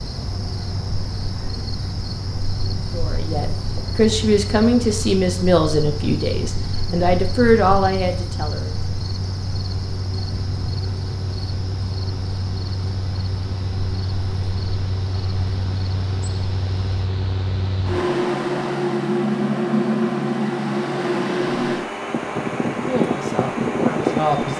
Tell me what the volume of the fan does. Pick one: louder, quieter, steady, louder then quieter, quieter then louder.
louder.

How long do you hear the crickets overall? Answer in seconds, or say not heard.
17 s.